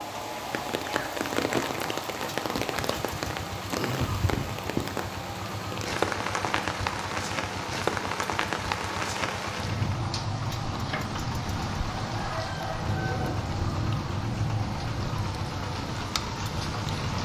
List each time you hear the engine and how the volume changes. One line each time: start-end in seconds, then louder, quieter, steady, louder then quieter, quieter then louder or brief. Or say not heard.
0.0-17.1 steady.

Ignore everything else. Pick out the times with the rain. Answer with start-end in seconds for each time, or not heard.
0.0-17.1.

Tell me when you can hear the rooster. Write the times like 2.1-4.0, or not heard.
12.0-13.3.